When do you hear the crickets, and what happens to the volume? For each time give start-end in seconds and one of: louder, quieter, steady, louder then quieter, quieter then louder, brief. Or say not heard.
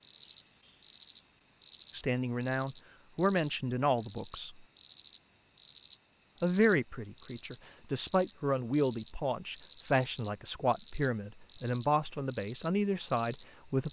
0.0-13.8 steady.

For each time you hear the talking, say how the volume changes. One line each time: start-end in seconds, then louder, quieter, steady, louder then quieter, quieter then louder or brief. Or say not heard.
1.9-4.7 brief
6.4-13.8 louder.